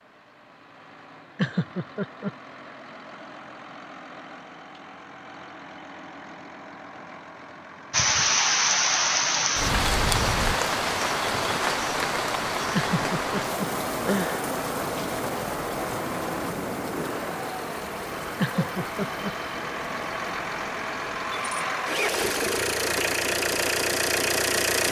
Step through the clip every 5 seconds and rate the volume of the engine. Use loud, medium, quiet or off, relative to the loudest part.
quiet, quiet, medium, medium, loud.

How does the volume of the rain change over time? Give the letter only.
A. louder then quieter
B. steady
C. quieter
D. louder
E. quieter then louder
C.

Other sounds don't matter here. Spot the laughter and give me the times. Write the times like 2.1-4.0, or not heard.
1.4-2.3, 12.7-14.4, 18.4-19.3.